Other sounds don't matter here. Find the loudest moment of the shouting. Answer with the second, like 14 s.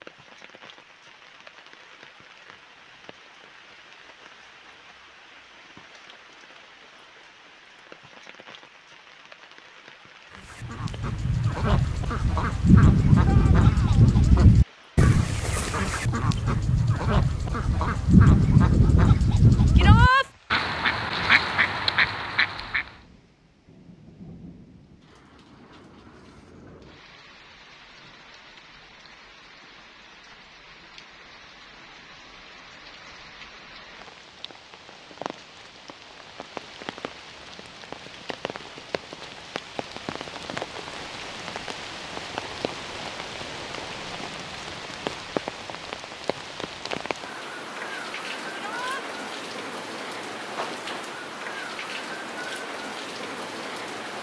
20 s.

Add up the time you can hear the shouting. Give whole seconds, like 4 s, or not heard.
2 s.